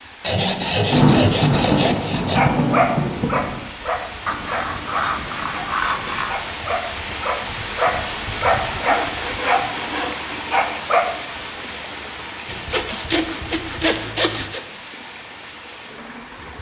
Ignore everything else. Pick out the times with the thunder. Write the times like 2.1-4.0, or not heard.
0.8-3.6.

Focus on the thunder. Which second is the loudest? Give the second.
1 s.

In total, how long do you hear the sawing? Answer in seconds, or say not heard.
8 s.